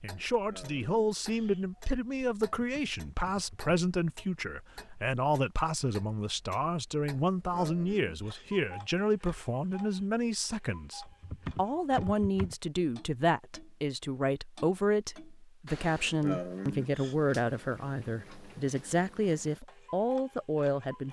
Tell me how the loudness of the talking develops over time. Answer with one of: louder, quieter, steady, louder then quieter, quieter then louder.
steady.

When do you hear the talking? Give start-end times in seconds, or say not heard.
0.0-21.0.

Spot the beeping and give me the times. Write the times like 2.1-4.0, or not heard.
not heard.